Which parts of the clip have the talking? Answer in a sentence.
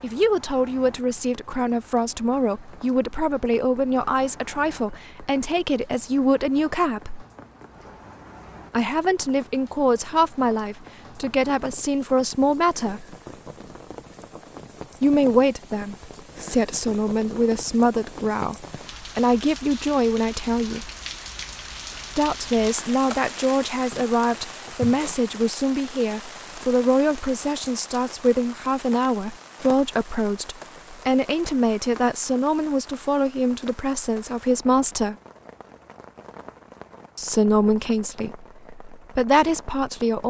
You can hear the talking from 0.0 to 7.2 s, from 8.7 to 13.2 s, from 15.0 to 20.9 s, from 22.1 to 35.1 s and from 37.1 to 40.2 s.